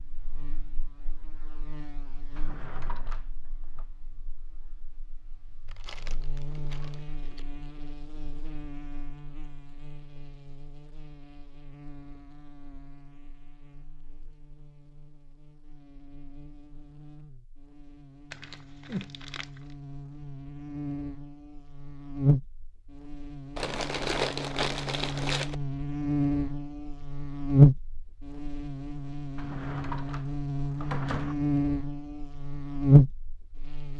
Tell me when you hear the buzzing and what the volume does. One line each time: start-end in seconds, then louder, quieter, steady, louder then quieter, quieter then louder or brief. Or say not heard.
0.0-33.9 louder.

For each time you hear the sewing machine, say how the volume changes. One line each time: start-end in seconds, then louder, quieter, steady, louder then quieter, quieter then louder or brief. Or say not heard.
not heard.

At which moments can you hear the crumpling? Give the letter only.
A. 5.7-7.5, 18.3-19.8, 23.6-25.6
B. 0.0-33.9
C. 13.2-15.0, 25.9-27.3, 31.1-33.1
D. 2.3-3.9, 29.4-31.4
A.